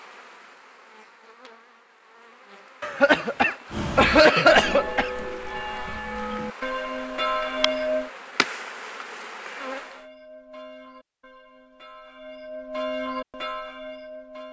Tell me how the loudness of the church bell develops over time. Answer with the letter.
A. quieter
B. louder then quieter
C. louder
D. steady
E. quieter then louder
E.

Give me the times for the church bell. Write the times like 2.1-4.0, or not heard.
3.7-8.1, 9.8-14.4.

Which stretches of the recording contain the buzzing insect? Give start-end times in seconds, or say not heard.
0.0-10.1.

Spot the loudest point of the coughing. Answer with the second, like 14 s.
4 s.